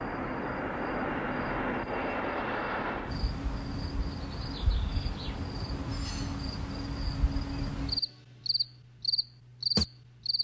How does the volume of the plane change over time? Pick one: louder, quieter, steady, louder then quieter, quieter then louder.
quieter.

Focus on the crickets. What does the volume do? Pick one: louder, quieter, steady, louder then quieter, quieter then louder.
louder.